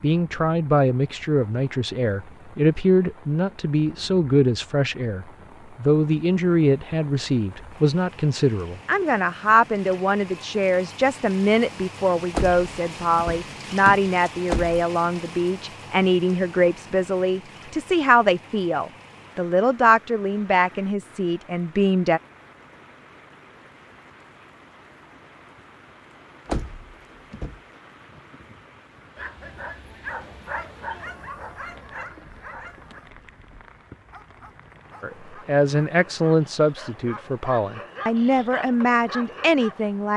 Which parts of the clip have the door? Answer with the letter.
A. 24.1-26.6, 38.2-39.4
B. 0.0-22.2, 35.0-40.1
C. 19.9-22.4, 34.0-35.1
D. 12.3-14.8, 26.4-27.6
D.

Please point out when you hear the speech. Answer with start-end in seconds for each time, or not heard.
0.0-22.2, 35.0-40.1.